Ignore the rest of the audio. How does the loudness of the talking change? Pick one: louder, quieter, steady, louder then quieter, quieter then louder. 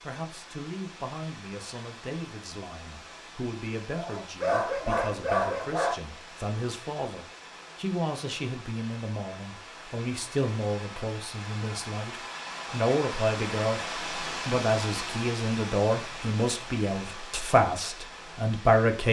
louder.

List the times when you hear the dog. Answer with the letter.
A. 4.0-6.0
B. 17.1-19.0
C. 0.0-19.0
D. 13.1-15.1
A.